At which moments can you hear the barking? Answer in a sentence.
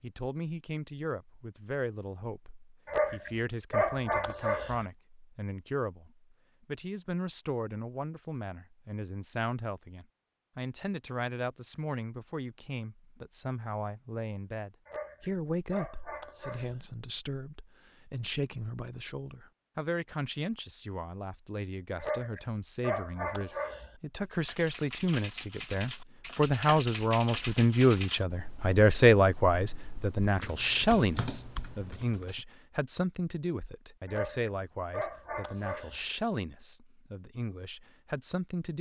The barking can be heard from 2.9 to 4.8 s, from 14.8 to 16.8 s, from 21.9 to 23.9 s and from 34.0 to 36.0 s.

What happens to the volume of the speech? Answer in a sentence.
The volume of the speech goes up, then down.